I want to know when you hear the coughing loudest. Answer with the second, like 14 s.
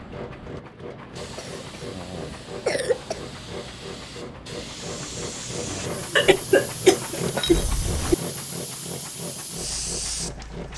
7 s.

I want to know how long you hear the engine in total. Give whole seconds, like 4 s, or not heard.
11 s.